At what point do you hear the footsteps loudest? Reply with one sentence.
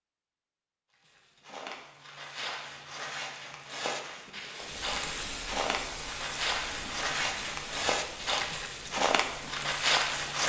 The loudest moment of the footsteps is at 10 seconds.